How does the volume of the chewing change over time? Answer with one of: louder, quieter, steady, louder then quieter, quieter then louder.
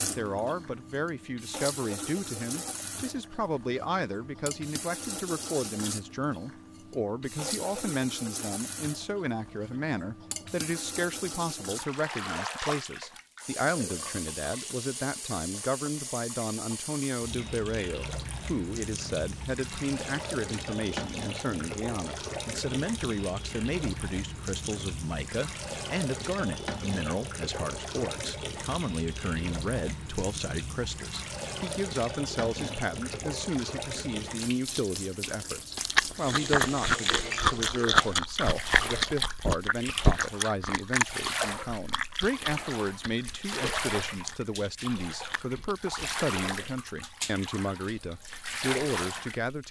quieter.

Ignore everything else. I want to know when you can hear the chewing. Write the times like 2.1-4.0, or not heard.
35.8-46.0.